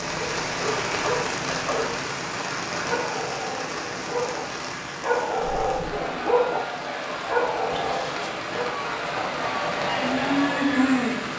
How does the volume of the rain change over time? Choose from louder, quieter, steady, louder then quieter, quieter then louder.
quieter then louder.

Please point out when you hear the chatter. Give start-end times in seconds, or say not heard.
5.5-11.1.